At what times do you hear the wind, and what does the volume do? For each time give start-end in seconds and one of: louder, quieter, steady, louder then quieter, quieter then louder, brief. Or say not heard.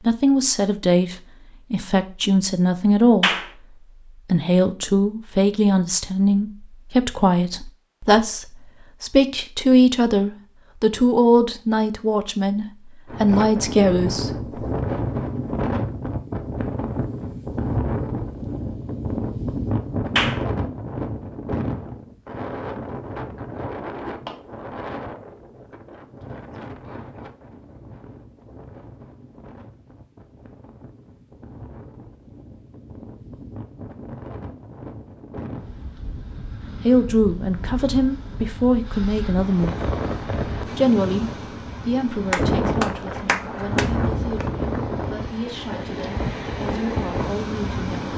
13.1-48.1 quieter then louder.